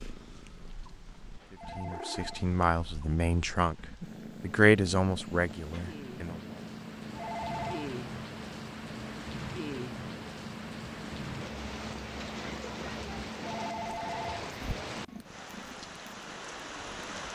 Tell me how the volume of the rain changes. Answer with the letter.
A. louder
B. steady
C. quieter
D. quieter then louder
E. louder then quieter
A.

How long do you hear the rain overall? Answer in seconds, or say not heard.
17 s.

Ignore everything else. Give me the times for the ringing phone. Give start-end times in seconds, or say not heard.
1.6-2.5, 7.2-7.9, 13.4-14.5.